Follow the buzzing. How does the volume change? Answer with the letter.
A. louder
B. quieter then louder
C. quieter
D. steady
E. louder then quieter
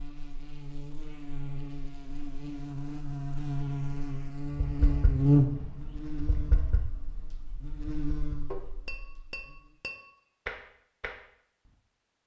E.